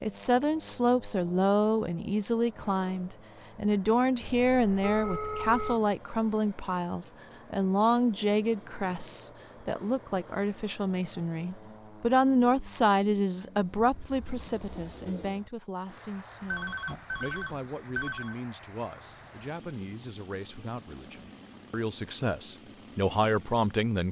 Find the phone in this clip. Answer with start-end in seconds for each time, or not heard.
4.2-5.8, 16.5-18.4.